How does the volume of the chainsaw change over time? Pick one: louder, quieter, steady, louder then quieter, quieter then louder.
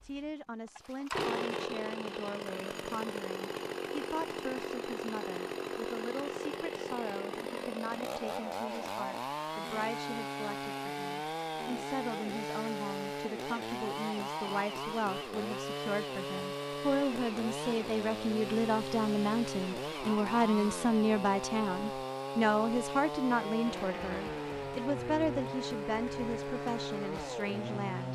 steady.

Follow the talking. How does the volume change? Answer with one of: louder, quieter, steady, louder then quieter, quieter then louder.
louder.